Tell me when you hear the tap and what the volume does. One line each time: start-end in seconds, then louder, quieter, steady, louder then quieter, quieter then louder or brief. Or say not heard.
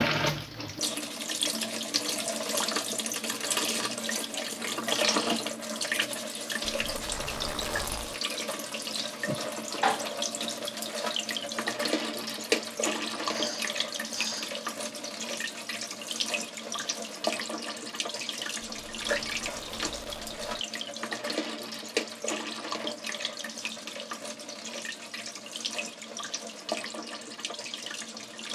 0.0-28.5 quieter.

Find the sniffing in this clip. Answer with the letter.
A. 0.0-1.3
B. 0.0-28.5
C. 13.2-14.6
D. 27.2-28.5
C.